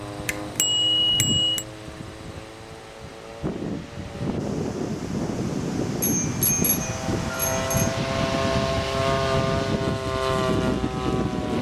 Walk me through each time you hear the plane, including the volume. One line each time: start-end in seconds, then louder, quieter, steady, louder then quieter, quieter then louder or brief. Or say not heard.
0.0-11.5 louder.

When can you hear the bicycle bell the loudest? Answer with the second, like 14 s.
1 s.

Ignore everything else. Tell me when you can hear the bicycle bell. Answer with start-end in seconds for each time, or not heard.
0.2-1.6, 6.0-7.9.